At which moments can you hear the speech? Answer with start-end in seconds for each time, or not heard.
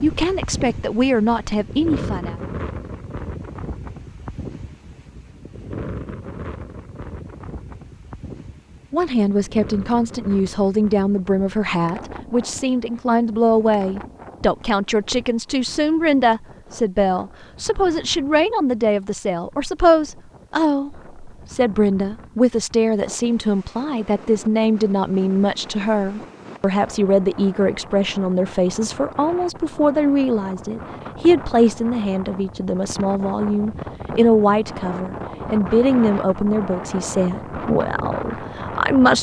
0.0-2.4, 8.9-39.1.